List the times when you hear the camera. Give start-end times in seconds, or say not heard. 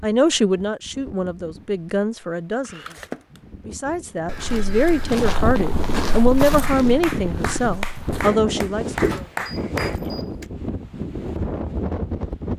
2.6-3.4, 9.3-10.5.